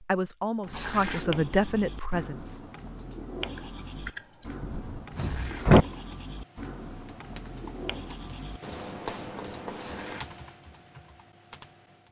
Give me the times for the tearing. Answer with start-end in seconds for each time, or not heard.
0.7-1.2, 5.2-5.7, 9.8-10.3.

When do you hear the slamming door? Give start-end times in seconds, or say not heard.
4.6-5.8.